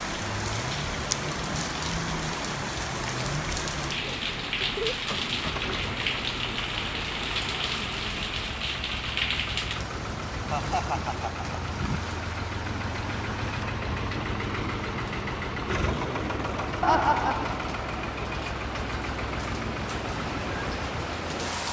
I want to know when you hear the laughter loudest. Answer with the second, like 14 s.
17 s.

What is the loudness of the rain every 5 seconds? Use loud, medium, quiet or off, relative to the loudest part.
loud, loud, medium, medium, loud.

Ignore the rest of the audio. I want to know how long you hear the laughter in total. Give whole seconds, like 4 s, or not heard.
2 s.